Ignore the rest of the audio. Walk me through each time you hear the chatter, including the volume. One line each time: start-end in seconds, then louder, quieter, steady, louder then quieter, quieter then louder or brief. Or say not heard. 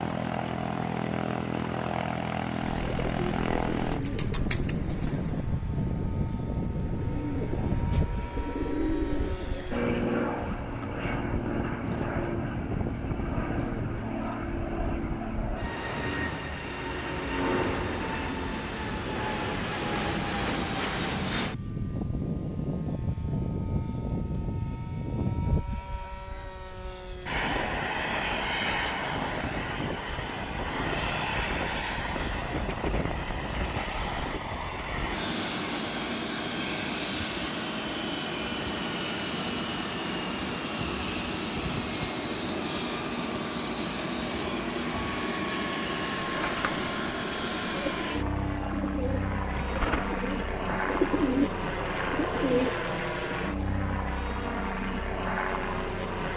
not heard.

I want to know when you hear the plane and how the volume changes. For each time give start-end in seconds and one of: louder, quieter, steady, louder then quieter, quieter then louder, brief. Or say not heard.
0.0-56.3 steady.